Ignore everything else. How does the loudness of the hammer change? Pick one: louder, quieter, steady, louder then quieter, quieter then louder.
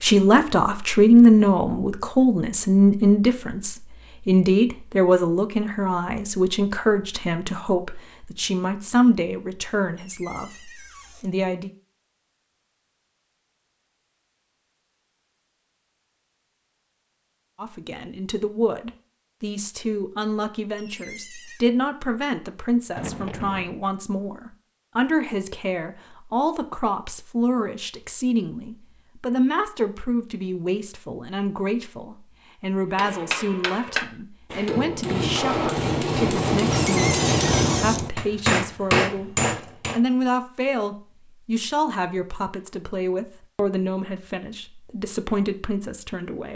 louder.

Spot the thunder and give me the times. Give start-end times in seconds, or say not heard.
22.9-23.8.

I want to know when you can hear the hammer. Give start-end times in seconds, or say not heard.
33.0-40.0.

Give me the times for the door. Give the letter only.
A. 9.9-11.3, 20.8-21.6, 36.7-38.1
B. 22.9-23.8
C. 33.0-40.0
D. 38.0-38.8
A.